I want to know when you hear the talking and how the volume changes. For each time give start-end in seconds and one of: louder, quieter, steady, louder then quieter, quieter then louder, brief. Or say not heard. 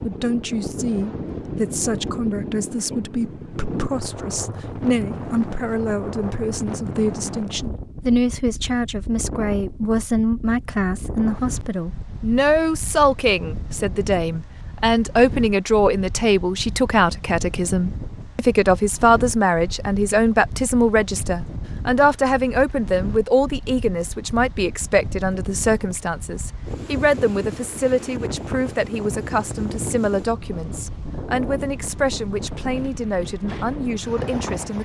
0.0-34.8 louder then quieter.